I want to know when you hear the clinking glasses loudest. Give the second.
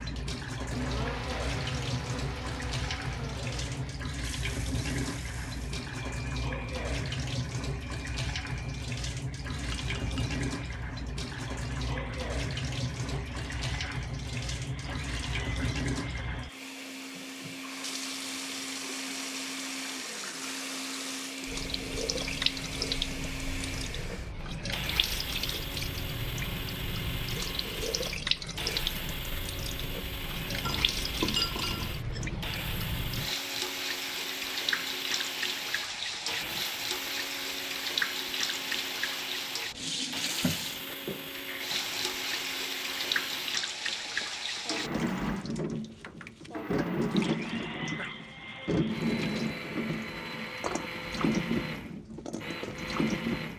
31 s.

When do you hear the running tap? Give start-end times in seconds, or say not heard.
0.0-53.5.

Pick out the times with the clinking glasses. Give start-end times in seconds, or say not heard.
9.5-10.4, 30.6-32.4.